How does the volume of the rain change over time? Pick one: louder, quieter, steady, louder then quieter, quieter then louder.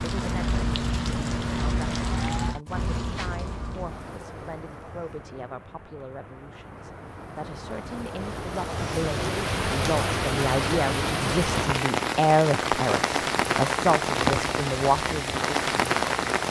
quieter then louder.